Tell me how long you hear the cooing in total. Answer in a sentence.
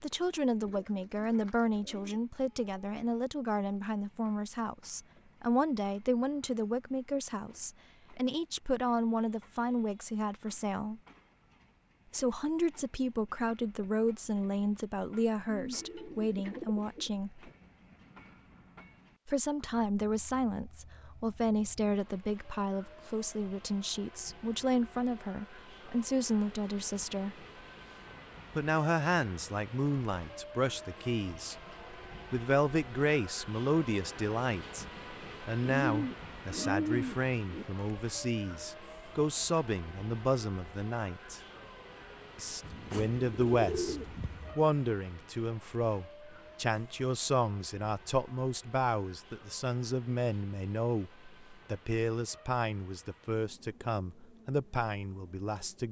You can hear the cooing for 7 seconds altogether.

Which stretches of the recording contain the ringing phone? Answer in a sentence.
The ringing phone can't be heard in this clip.